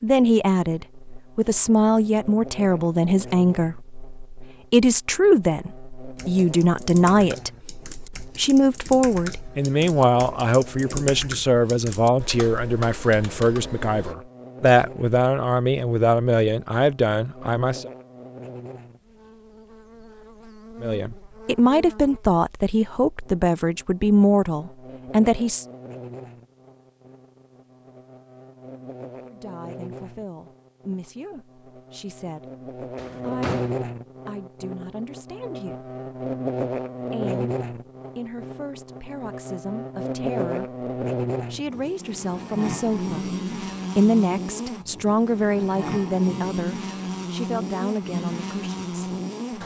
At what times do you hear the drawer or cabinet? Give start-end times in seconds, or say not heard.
33.0-33.8.